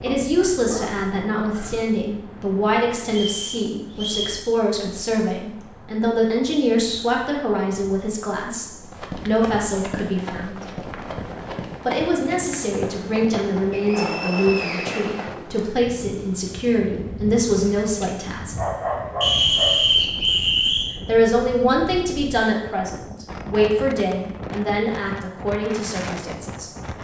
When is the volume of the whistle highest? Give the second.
20 s.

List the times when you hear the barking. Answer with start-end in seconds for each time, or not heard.
0.1-1.9, 18.0-20.0.